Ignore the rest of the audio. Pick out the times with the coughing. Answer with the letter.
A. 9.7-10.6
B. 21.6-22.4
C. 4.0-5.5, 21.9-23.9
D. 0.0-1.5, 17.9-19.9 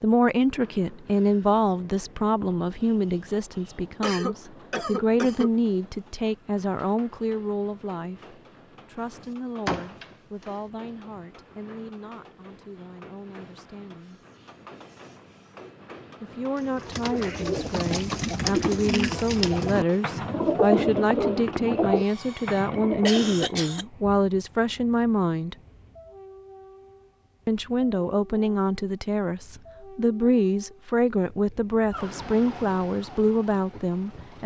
C.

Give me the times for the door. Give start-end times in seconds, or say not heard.
9.7-10.6.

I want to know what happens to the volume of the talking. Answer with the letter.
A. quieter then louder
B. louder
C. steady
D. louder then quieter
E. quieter
A.